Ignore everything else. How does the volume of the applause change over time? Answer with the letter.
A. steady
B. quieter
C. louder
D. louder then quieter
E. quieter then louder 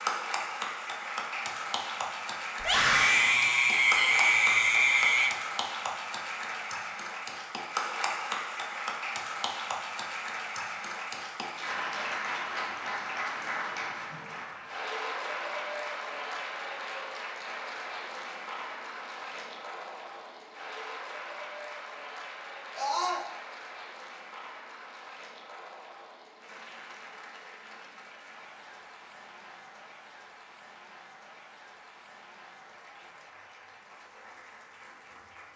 B.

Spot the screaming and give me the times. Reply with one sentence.
The screaming can be heard from 2.6 to 5.3 s and from 22.8 to 23.2 s.